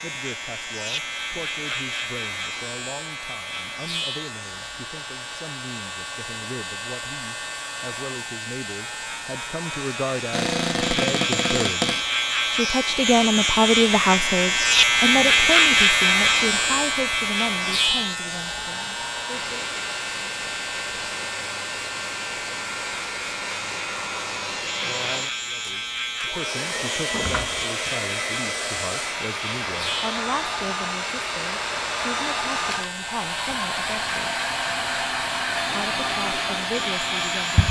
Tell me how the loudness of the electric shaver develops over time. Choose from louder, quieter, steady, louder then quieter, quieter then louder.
louder then quieter.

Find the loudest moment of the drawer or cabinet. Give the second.
11 s.